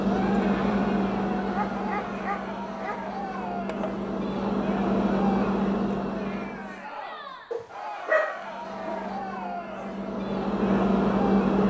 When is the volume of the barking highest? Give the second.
8 s.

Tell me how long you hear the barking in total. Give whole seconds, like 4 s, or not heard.
3 s.